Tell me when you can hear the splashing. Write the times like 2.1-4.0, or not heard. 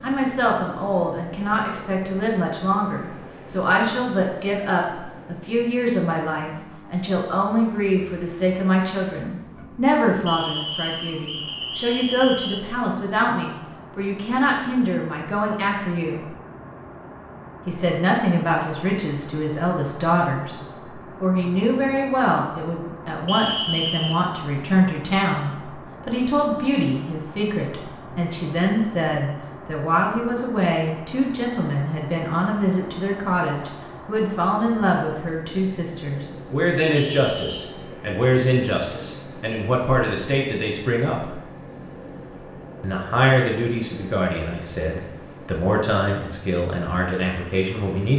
not heard.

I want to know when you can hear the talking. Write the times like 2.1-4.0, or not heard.
0.0-16.3, 17.6-20.6, 21.2-41.4, 42.8-48.1.